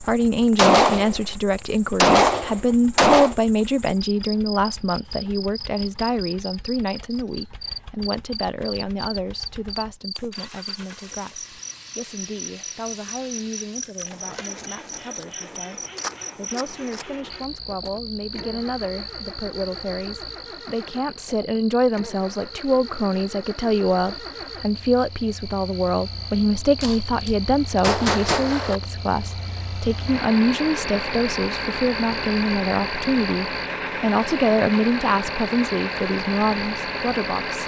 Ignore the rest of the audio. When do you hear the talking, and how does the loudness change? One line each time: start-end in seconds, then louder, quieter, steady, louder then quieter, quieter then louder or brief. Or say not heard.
0.0-37.6 quieter then louder.